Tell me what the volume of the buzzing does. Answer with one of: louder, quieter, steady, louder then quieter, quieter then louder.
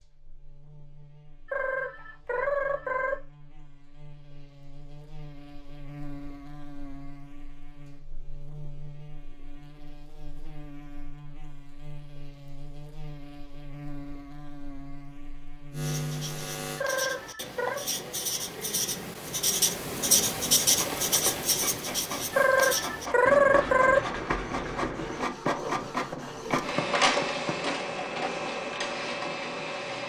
louder.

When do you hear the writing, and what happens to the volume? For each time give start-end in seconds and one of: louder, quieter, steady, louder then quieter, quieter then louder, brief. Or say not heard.
15.8-27.7 louder then quieter.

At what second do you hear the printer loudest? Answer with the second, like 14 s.
27 s.